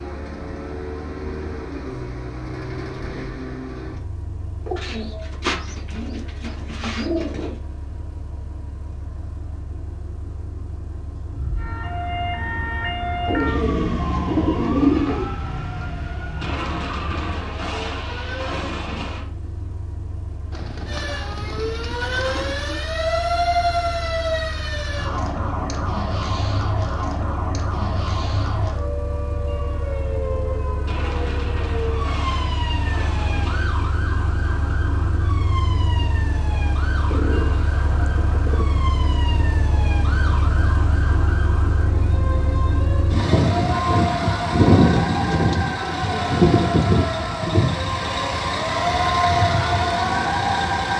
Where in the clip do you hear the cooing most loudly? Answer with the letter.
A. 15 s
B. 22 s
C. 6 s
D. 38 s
A.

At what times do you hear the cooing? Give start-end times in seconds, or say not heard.
4.7-7.5, 13.2-15.3, 20.5-22.8, 37.0-38.6, 45.0-46.9.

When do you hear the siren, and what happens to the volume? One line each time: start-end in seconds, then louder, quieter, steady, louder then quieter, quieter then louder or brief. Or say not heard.
11.3-18.7 quieter
20.9-50.9 quieter then louder.